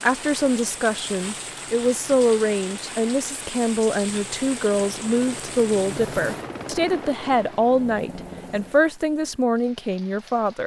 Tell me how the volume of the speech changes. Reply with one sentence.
The volume of the speech stays about the same.